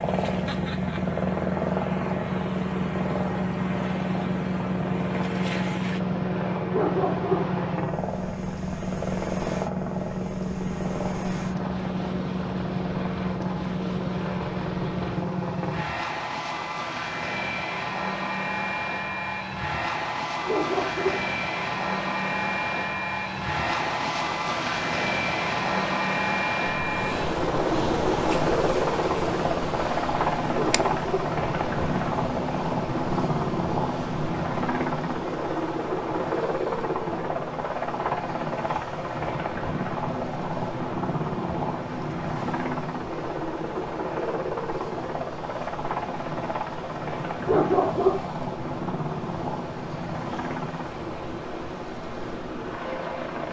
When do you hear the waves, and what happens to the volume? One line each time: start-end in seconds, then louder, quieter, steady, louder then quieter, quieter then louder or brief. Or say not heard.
0.0-53.4 louder then quieter.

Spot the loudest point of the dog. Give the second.
48 s.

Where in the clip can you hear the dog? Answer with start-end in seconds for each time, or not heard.
6.7-7.5, 20.4-21.2, 30.5-31.4, 47.5-48.2.